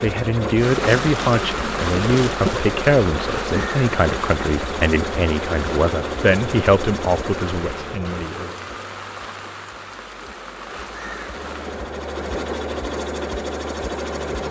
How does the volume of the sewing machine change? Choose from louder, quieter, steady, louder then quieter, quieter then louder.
quieter then louder.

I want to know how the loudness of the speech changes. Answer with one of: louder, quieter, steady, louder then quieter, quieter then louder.
steady.